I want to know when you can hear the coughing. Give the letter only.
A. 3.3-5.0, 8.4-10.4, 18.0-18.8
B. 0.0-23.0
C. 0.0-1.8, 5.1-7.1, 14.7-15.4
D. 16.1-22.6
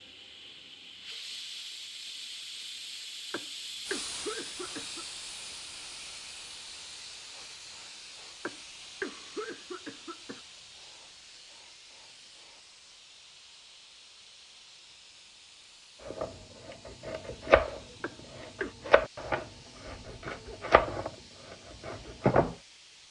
A.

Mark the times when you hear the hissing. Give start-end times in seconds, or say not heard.
0.0-23.0.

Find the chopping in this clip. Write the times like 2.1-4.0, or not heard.
16.1-22.6.